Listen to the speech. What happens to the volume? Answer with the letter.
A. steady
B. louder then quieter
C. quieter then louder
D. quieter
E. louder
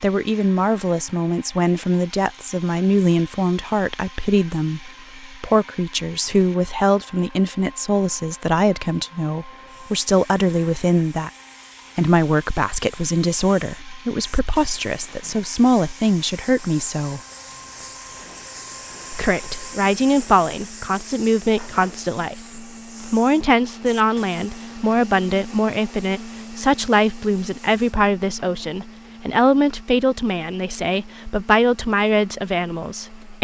A.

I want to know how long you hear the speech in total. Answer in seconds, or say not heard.
31 s.